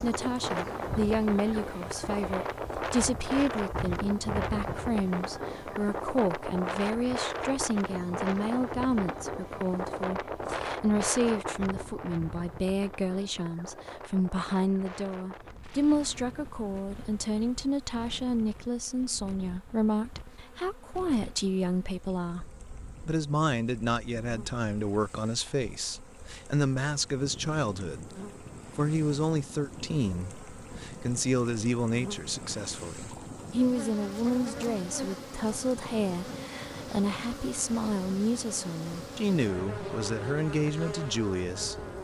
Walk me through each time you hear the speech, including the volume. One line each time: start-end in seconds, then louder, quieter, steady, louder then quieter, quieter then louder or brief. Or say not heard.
0.0-28.1 steady
28.8-41.9 steady.